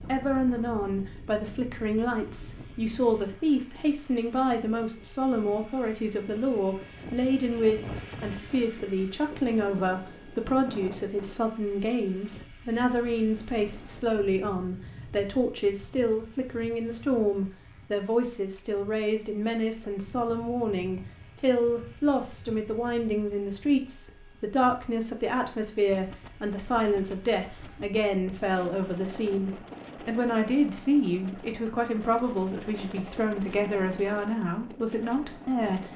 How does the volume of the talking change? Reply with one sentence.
The loudness of the talking stays about the same.